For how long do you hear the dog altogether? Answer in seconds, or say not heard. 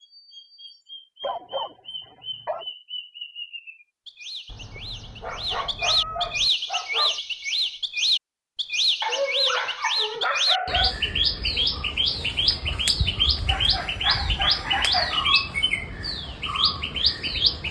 7 s.